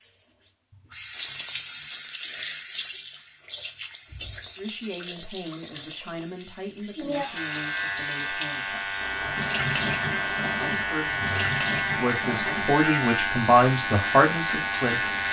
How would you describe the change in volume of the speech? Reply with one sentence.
The volume of the speech goes up.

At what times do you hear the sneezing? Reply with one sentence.
The sneezing can't be heard in this clip.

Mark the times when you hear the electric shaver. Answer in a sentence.
You can hear the electric shaver from 7.3 to 15.2 s.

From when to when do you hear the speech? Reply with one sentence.
The speech can be heard from 4.5 to 8.8 s and from 10.6 to 15.1 s.